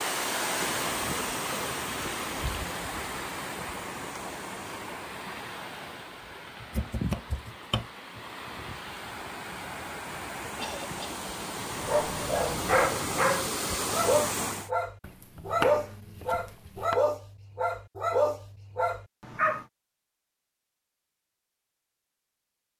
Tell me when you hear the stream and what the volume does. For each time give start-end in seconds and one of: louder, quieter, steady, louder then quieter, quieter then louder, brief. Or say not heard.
0.0-14.7 quieter then louder.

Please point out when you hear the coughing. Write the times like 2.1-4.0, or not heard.
10.6-11.2.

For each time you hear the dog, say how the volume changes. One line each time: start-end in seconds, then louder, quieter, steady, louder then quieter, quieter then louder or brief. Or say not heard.
11.7-19.6 steady.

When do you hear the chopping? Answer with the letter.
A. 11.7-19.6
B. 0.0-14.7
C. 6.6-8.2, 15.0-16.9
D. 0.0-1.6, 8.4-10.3
C.